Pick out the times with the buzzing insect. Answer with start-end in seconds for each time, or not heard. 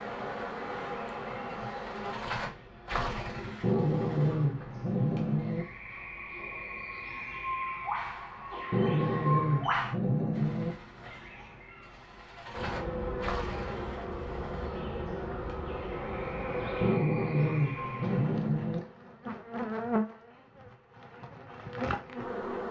0.0-2.2, 12.5-22.6.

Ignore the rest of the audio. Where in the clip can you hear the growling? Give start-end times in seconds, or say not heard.
3.6-5.7, 8.7-10.8, 16.8-18.8.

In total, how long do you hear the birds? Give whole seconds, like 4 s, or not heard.
18 s.